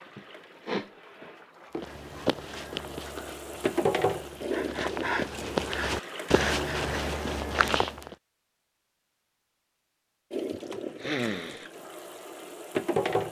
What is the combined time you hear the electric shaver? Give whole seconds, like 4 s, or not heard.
not heard.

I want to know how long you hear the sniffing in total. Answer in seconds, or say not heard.
4 s.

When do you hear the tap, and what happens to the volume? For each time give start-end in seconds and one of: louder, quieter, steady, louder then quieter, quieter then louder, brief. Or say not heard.
0.0-7.2 louder then quieter
10.3-13.2 brief.